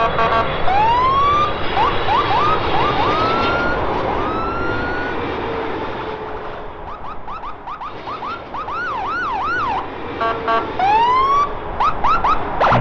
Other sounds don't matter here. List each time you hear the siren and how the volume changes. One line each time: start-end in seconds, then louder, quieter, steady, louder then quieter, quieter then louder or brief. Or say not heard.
0.0-12.7 quieter then louder.